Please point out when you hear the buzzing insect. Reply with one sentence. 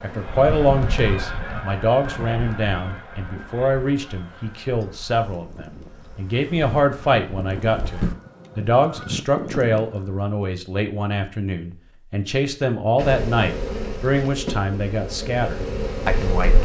The buzzing insect can be heard from 0.0 to 8.2 s and from 12.9 to 16.6 s.